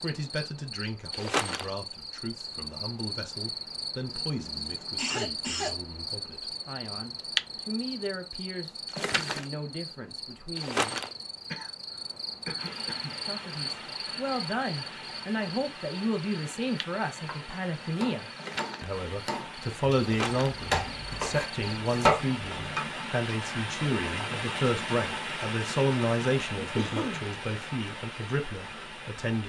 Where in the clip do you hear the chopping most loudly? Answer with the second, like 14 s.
22 s.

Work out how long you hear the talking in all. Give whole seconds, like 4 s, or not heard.
27 s.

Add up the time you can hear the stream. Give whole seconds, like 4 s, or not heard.
17 s.